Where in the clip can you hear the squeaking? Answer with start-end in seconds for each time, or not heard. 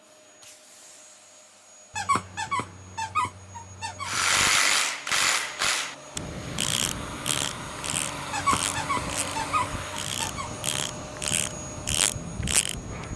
1.9-4.3, 8.3-10.7.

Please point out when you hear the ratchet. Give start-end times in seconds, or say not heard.
4.0-13.1.